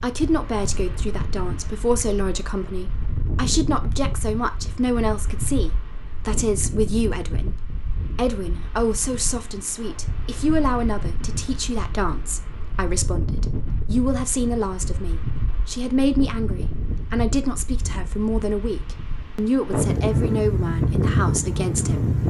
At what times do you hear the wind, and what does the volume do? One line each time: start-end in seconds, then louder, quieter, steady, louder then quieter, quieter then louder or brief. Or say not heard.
0.0-22.2 louder.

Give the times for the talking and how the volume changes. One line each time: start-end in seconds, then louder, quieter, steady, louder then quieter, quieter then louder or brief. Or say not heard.
0.0-22.1 steady.